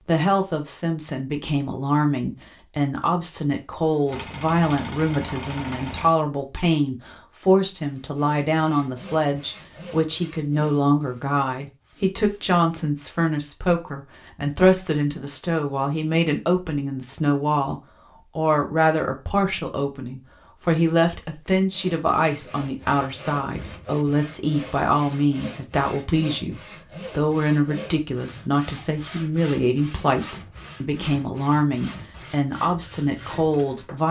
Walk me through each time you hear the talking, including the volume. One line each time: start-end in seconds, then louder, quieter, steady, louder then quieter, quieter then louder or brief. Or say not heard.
0.1-34.0 steady.